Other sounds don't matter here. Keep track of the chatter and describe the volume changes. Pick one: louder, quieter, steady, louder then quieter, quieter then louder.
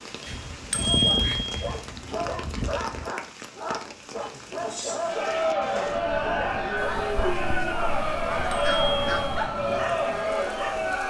steady.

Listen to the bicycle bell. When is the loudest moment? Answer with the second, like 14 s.
1 s.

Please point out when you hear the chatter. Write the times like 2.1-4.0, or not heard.
5.0-11.0.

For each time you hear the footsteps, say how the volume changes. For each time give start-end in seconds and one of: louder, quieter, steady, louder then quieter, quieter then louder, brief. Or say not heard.
not heard.